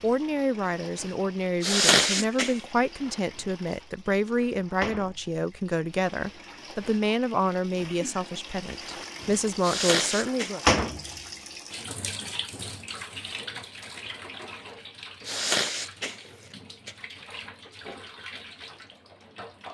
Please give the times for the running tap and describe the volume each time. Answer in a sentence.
The running tap can be heard from 0.0 to 19.7 s, getting louder then quieter.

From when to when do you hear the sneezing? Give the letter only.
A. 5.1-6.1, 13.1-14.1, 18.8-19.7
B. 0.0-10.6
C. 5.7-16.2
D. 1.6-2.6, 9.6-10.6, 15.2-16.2
D.